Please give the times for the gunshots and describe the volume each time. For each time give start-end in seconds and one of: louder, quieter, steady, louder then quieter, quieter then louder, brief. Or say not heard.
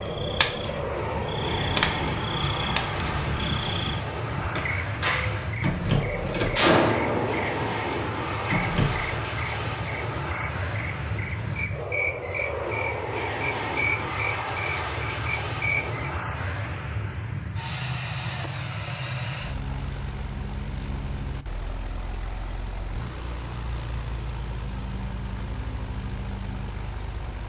4.3-9.2 louder then quieter.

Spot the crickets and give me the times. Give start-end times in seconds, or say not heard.
0.0-16.1.